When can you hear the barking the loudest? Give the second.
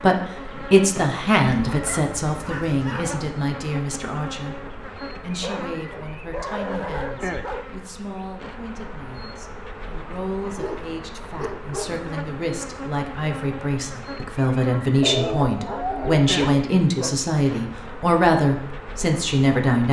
15 s.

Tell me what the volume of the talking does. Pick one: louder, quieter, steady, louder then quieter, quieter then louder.
quieter then louder.